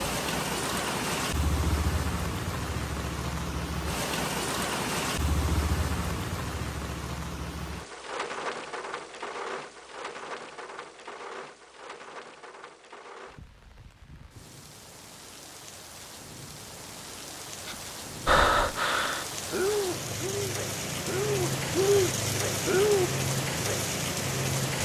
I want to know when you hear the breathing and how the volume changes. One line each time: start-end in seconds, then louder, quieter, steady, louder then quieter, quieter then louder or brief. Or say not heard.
17.6-23.1 quieter then louder.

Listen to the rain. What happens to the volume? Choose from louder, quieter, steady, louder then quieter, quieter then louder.
quieter then louder.